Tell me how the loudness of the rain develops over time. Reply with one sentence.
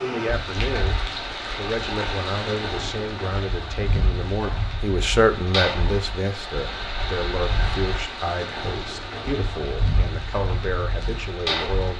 The loudness of the rain stays about the same.